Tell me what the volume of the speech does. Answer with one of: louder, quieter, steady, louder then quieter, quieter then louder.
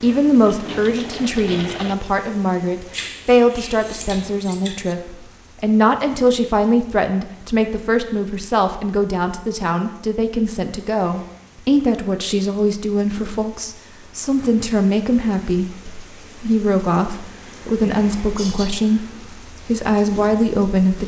steady.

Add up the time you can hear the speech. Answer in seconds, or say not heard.
21 s.